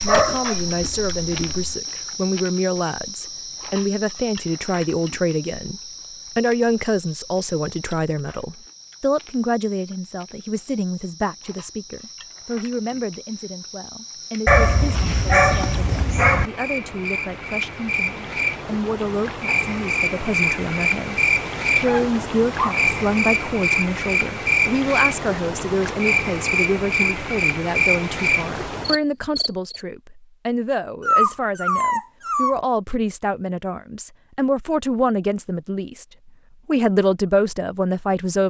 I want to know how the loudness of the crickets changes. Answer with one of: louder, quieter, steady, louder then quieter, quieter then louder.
quieter then louder.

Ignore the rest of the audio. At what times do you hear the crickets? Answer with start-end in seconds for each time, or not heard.
0.0-29.8.